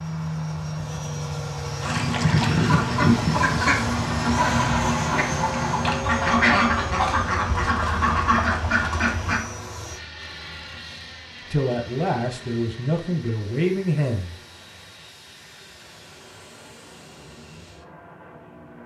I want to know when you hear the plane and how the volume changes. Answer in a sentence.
You can hear the plane from 0.0 to 18.8 s, getting quieter.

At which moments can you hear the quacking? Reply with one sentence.
You can hear the quacking from 1.8 to 9.4 s.